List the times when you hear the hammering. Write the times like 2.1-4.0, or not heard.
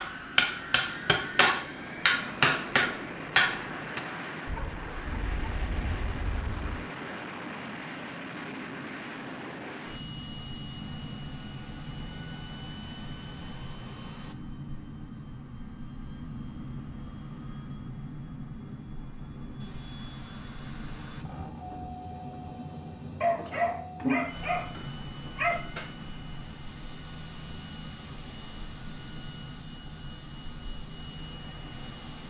0.0-4.0.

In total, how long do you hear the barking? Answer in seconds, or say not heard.
5 s.